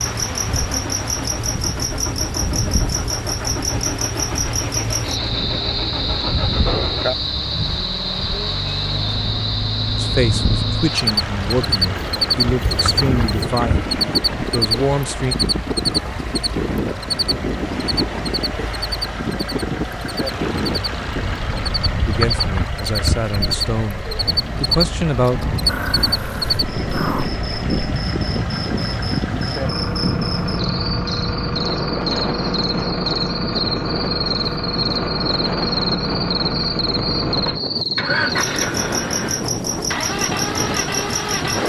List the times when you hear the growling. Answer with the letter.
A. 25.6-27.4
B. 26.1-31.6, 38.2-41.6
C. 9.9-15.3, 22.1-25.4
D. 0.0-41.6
A.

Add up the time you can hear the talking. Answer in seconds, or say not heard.
9 s.